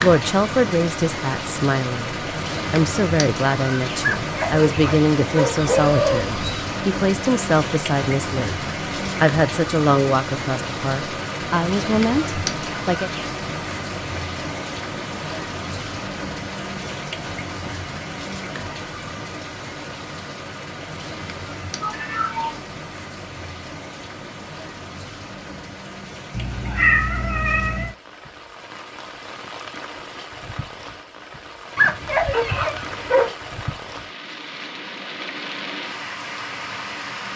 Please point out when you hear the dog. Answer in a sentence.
The dog can be heard from 4.0 to 5.9 s and from 31.8 to 33.3 s.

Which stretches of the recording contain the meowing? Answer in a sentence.
You can hear the meowing from 5.6 to 6.7 s, from 21.8 to 22.6 s and from 26.4 to 27.9 s.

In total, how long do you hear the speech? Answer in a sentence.
The speech can be heard for 13 seconds in total.